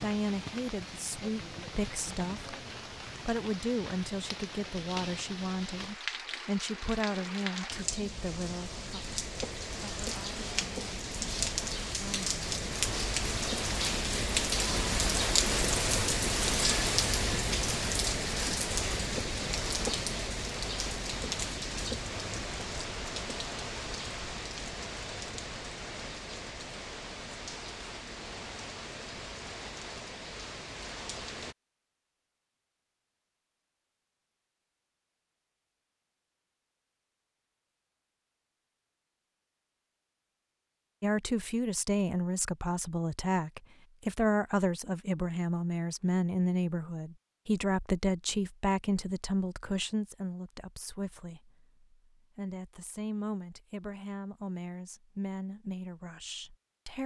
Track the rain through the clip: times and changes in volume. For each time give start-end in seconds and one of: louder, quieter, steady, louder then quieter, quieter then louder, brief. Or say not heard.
0.0-31.6 louder then quieter.